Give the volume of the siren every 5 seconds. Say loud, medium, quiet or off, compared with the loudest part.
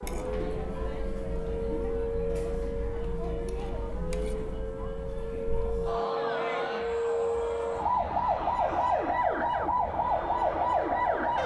medium, loud, loud.